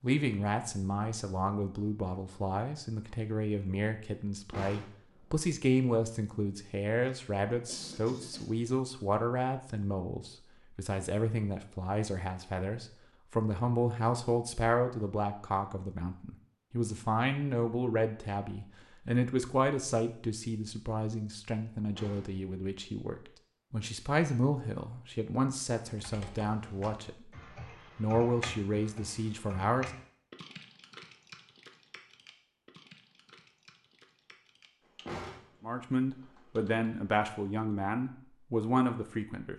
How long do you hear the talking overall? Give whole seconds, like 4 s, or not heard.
33 s.